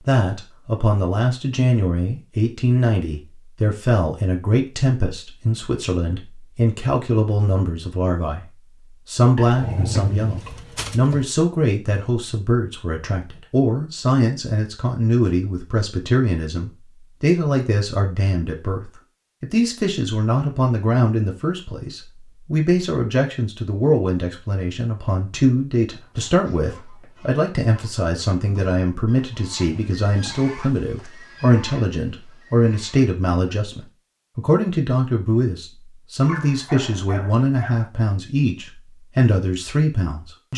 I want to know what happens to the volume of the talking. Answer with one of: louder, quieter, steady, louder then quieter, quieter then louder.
steady.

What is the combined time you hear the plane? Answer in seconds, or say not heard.
not heard.